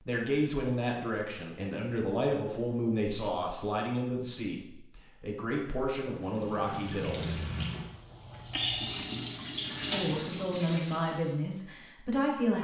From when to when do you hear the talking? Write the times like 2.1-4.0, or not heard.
0.0-7.5, 9.9-12.5.